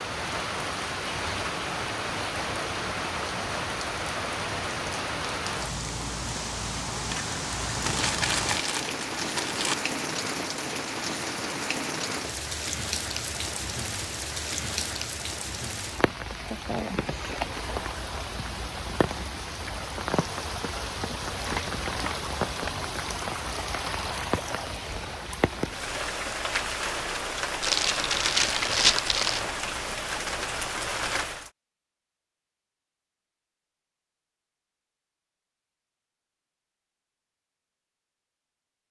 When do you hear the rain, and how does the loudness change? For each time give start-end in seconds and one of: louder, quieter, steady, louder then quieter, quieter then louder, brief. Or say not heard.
0.0-31.5 steady.